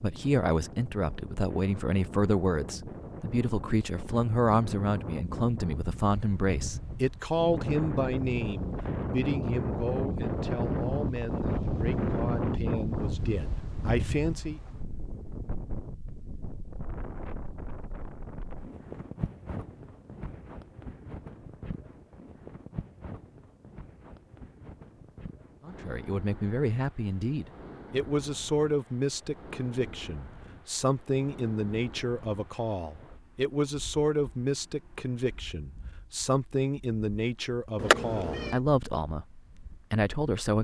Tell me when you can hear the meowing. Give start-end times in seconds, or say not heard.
37.8-38.6.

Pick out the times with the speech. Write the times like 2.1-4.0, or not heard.
0.0-14.6, 25.6-40.5.